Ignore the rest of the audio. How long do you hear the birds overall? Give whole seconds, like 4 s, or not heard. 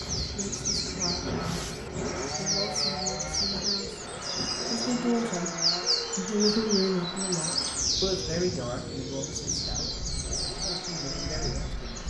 12 s.